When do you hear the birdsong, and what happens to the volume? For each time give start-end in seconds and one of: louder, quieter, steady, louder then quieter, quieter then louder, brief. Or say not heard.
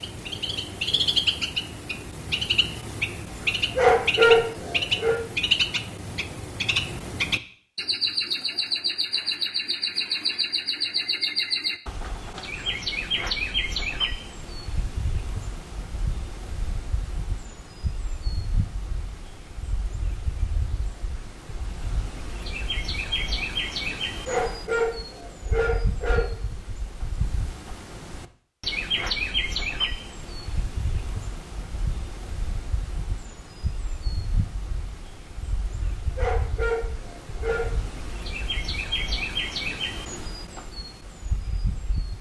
0.0-42.1 quieter.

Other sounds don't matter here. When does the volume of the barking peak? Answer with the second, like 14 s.
4 s.